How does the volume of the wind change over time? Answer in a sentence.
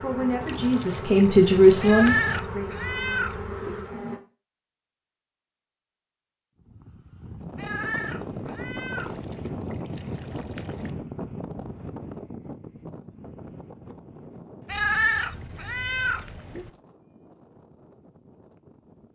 The volume of the wind goes down.